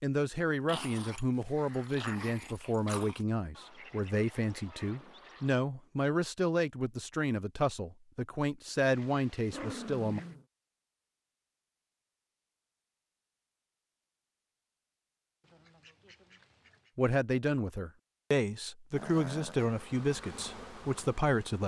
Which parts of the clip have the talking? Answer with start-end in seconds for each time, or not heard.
0.0-10.2, 16.9-21.6.